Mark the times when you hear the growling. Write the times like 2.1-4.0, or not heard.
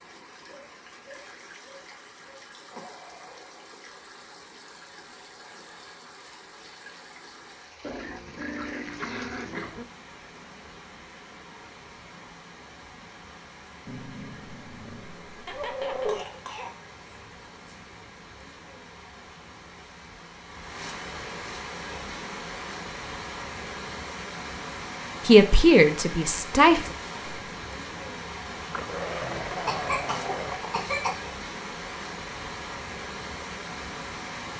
7.8-9.8, 13.8-16.2, 28.7-30.8.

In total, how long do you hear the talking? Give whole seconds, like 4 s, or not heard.
2 s.